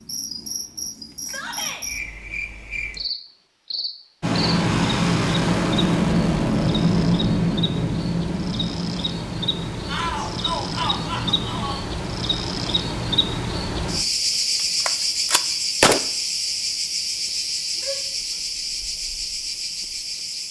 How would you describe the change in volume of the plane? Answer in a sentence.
The volume of the plane goes down.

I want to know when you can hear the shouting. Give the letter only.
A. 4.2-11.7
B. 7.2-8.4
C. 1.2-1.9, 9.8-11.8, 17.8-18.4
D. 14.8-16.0
C.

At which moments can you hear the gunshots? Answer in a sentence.
The gunshots can be heard from 14.8 to 16.0 s.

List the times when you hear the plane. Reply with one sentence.
The plane can be heard from 4.2 to 11.7 s.